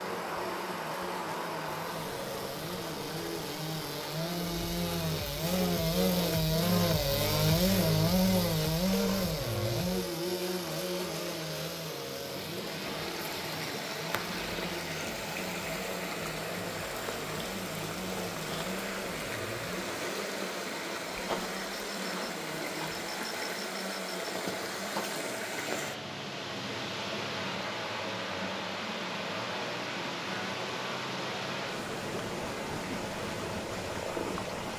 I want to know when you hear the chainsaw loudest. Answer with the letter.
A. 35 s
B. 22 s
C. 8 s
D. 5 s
C.